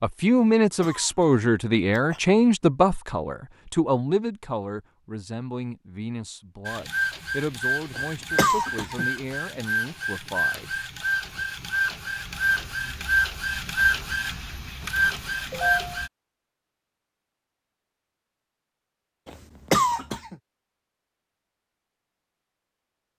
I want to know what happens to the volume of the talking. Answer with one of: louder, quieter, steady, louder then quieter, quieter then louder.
quieter.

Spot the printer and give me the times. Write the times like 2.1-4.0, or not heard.
6.7-16.1.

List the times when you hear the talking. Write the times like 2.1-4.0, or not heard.
0.0-10.8.